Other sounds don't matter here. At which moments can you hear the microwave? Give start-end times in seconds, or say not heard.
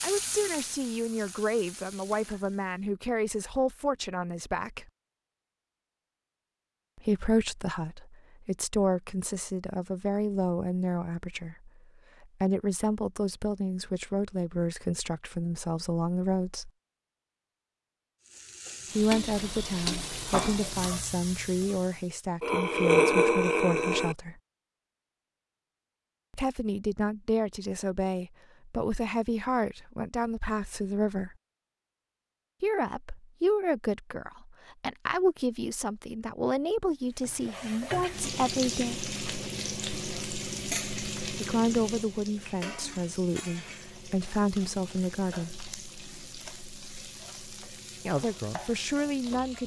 not heard.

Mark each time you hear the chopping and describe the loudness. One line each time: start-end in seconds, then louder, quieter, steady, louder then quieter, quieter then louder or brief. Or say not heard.
not heard.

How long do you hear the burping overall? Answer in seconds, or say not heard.
2 s.